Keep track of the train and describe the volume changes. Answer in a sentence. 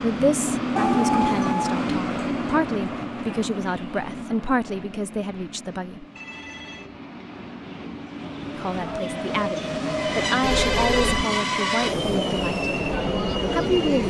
The loudness of the train goes down, then up.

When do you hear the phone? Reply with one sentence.
The phone can be heard from 0.8 to 1.8 s, from 6.2 to 7.0 s and from 10.4 to 11.2 s.